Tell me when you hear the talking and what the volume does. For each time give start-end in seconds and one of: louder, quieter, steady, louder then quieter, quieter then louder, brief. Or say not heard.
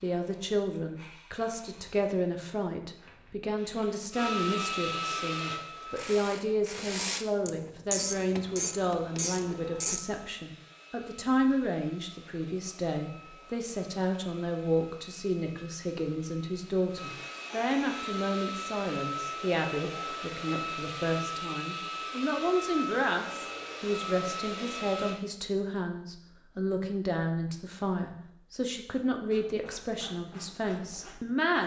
0.0-31.6 steady.